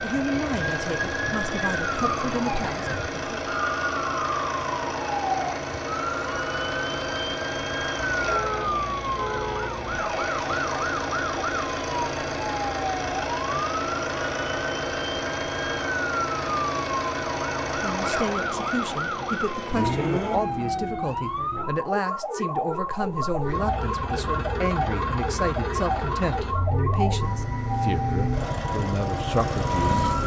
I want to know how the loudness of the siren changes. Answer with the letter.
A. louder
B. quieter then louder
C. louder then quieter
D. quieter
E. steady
E.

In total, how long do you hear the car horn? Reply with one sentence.
The car horn can be heard for 2 seconds in total.